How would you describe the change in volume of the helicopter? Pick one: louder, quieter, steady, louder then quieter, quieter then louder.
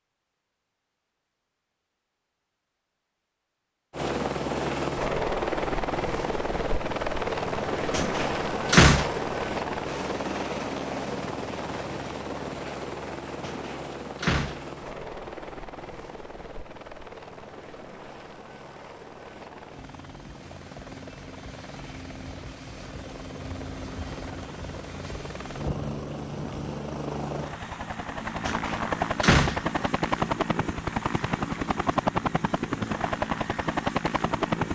quieter then louder.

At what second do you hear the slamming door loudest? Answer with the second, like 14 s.
9 s.